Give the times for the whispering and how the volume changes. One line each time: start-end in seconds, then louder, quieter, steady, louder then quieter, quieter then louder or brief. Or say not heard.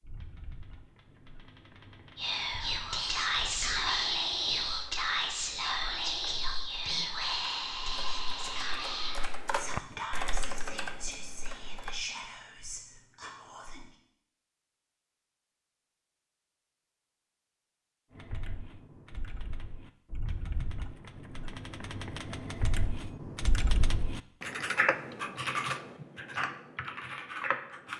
2.1-13.9 quieter.